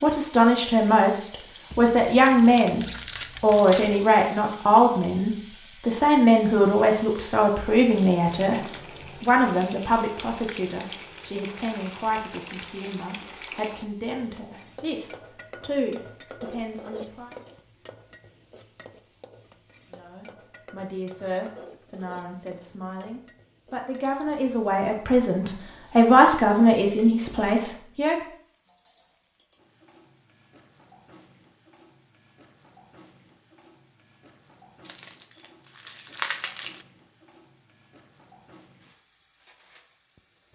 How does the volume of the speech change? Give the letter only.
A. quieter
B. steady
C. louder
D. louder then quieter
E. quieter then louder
E.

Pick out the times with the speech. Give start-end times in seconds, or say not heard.
0.0-17.4, 19.9-28.1.